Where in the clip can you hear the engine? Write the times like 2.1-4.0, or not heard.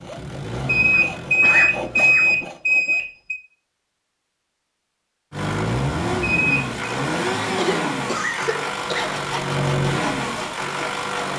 0.0-2.5, 5.3-11.3.